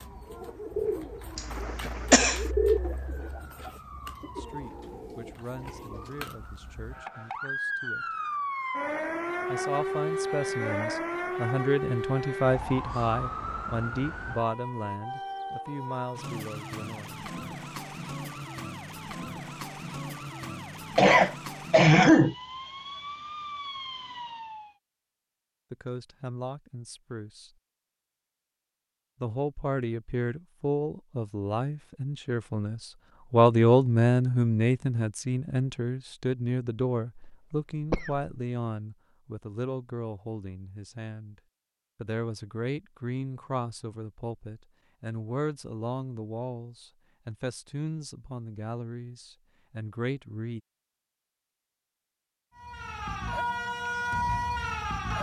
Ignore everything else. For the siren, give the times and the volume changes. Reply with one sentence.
The siren can be heard from 0.0 to 24.8 s, getting louder then quieter; and briefly from 52.5 to 55.1 s.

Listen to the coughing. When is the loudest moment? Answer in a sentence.
The loudest moment of the coughing is at 22 seconds.